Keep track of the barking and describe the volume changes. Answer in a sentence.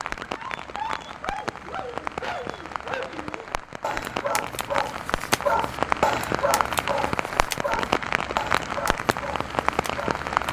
The volume of the barking goes up, then down.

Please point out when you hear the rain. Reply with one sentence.
The rain can be heard from 0.0 to 10.4 s.